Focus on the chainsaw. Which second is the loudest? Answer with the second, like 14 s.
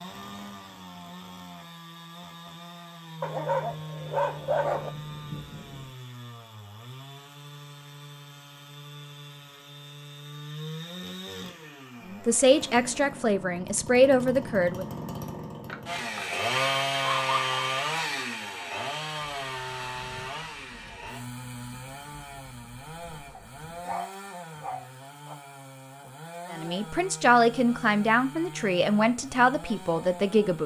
17 s.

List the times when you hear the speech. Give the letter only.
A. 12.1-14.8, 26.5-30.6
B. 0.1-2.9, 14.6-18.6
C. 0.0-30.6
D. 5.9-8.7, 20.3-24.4
A.